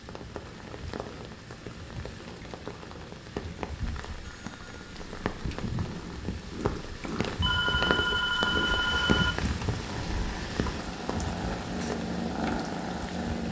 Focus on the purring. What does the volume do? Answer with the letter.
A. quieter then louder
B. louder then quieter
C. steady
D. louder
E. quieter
D.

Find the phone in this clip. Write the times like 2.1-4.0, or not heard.
4.2-4.9, 7.4-9.3.